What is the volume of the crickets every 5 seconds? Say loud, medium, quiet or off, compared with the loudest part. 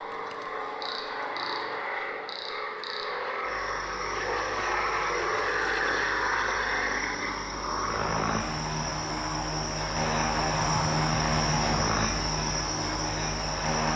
medium, medium, loud.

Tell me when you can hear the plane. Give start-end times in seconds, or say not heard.
0.0-13.9.